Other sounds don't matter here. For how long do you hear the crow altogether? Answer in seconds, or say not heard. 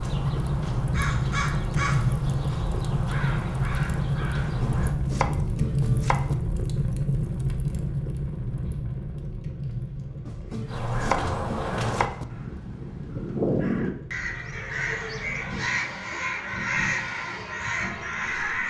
13 s.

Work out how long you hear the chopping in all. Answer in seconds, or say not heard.
4 s.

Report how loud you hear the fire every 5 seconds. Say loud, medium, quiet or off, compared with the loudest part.
loud, loud, quiet, quiet.